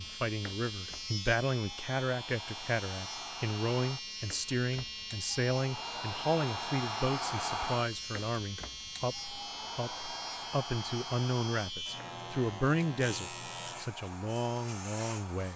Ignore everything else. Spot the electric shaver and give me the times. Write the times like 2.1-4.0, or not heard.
0.0-15.5.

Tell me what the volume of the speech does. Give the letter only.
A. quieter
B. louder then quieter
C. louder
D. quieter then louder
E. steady
E.